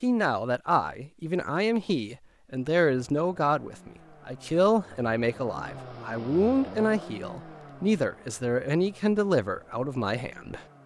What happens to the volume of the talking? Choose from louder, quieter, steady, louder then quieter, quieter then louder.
steady.